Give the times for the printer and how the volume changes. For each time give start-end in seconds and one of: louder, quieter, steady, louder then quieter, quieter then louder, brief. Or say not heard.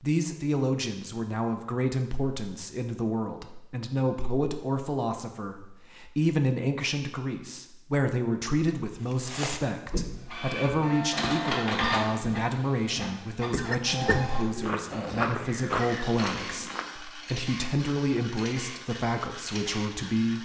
9.9-20.3 quieter.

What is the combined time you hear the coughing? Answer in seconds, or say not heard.
2 s.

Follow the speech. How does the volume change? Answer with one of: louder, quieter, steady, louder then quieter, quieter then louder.
steady.